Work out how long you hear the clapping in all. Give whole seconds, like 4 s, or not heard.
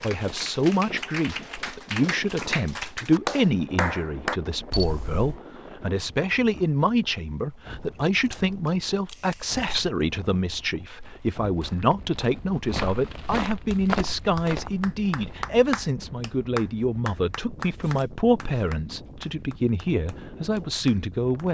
12 s.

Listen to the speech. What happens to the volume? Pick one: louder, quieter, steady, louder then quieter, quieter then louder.
steady.